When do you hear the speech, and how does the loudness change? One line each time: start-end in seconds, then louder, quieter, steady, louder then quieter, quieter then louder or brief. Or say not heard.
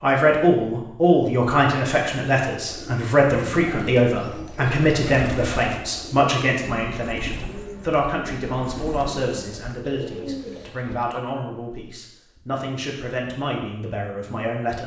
0.0-14.8 quieter.